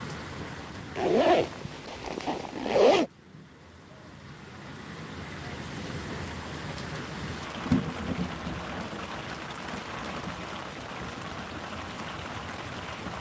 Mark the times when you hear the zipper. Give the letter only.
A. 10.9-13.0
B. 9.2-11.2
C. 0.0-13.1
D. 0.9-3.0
D.